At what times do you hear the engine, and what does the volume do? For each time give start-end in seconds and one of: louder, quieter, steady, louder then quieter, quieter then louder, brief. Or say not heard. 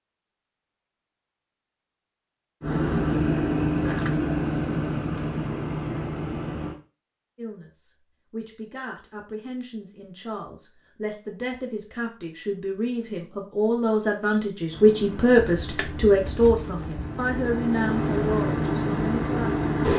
2.6-6.8 quieter
14.7-19.9 louder.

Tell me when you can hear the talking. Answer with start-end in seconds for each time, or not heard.
7.3-19.6.